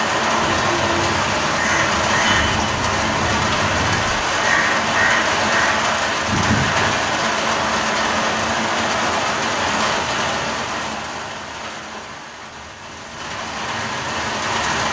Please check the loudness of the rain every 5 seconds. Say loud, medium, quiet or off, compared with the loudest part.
loud, loud, medium.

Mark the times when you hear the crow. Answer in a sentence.
You can hear the crow from 0.3 to 6.9 s.